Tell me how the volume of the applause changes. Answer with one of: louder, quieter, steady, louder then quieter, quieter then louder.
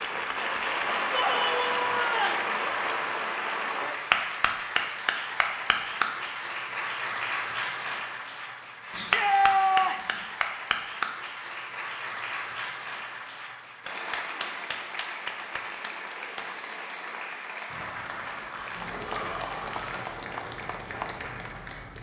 quieter.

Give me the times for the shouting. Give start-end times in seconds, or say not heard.
1.1-2.5, 8.9-10.2, 18.9-20.2.